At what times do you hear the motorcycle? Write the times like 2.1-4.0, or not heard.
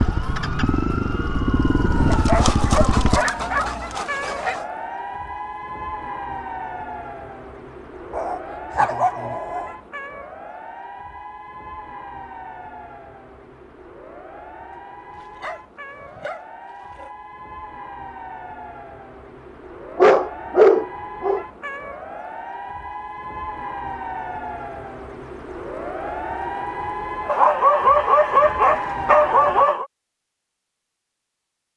0.0-3.2.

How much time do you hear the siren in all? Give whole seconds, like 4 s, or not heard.
30 s.